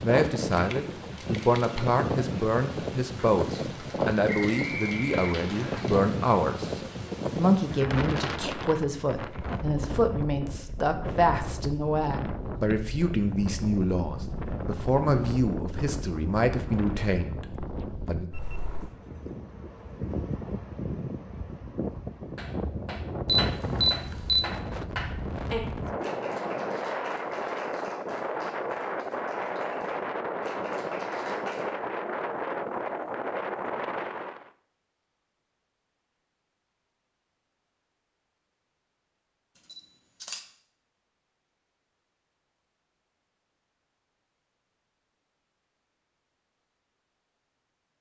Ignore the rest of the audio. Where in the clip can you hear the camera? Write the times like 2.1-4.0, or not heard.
0.5-1.8, 23.2-24.4, 39.7-40.4.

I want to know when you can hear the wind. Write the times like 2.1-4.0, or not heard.
0.0-34.5.